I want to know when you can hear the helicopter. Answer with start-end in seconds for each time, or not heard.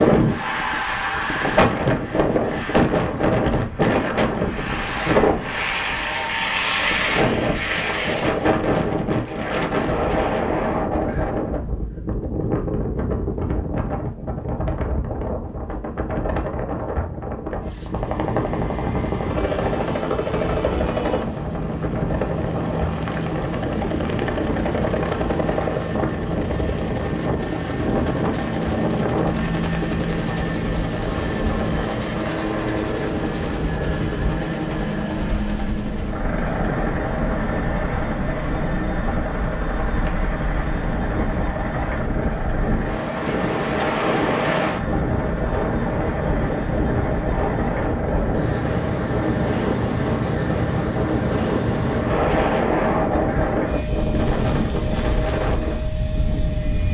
17.6-56.9.